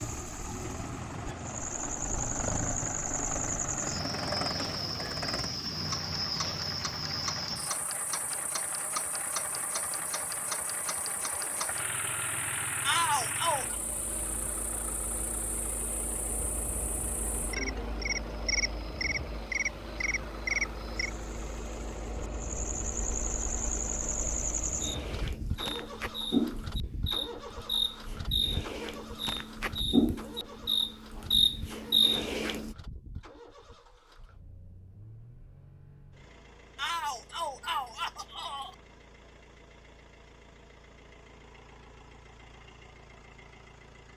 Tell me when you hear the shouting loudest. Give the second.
13 s.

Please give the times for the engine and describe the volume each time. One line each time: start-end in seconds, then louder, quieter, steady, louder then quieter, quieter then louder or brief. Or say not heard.
0.0-44.1 quieter.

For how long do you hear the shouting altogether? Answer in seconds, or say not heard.
3 s.